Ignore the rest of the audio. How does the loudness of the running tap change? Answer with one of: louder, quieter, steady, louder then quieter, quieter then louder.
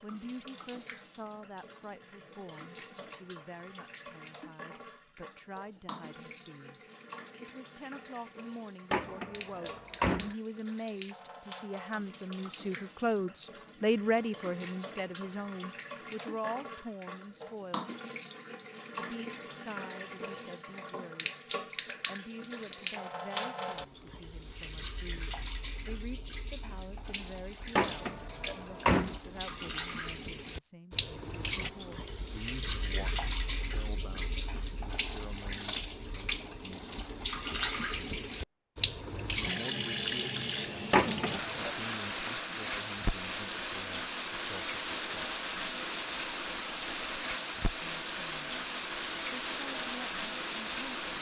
louder.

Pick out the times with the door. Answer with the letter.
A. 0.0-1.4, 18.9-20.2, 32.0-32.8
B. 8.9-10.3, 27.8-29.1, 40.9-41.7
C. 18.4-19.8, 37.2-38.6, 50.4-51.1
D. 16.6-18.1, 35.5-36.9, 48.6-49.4
B.